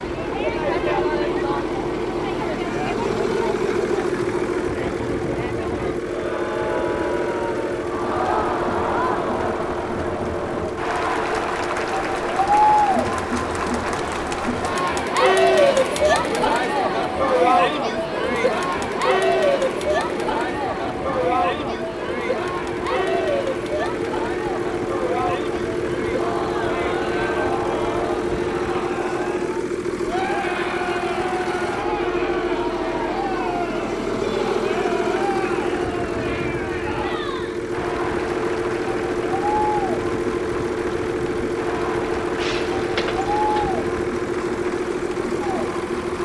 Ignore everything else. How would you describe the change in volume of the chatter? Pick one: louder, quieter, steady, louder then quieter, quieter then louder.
louder then quieter.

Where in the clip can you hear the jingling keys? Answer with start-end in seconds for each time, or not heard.
42.4-43.8.